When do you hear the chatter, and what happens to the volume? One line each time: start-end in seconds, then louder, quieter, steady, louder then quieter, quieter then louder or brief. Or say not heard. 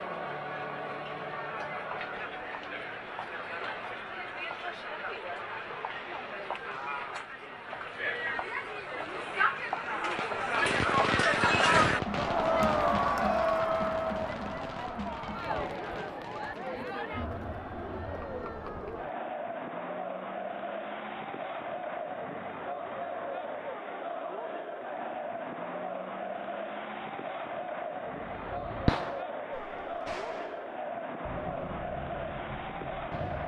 0.0-33.4 louder then quieter.